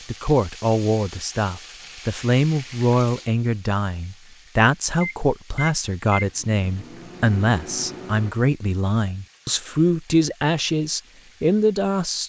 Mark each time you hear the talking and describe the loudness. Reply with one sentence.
The talking can be heard from 0.1 to 12.2 s, at a steady volume.